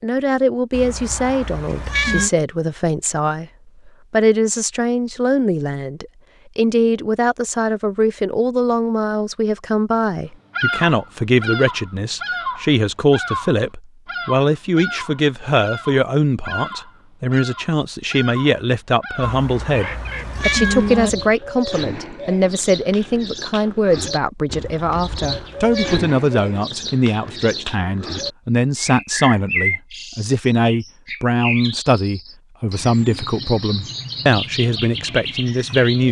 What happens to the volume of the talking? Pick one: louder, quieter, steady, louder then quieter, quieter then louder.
steady.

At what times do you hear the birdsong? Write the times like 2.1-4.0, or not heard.
10.5-36.0.